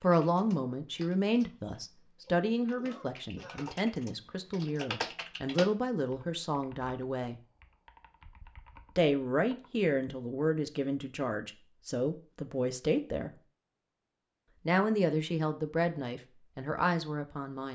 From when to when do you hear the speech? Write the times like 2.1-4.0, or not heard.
0.0-7.4, 8.9-13.3, 14.7-17.7.